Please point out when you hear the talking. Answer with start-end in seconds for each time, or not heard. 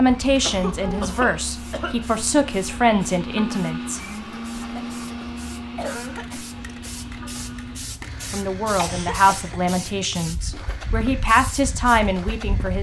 0.0-4.0, 8.3-12.7.